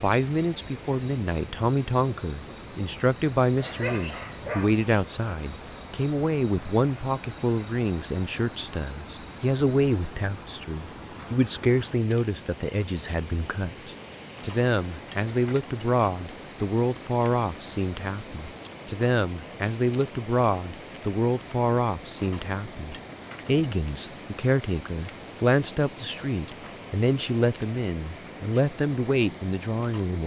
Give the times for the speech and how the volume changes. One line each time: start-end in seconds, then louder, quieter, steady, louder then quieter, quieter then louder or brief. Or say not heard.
0.0-30.2 steady.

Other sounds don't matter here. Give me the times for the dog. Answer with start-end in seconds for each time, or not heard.
3.5-4.8.